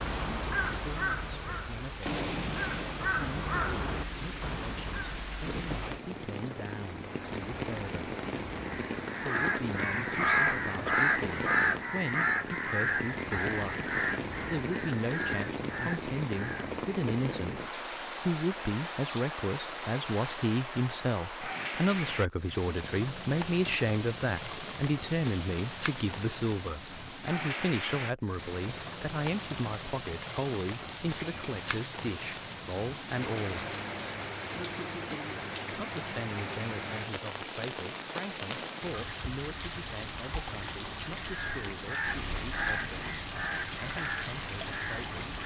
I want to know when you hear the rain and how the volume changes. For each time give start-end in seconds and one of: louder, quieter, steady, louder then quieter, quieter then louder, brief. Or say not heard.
0.0-45.4 steady.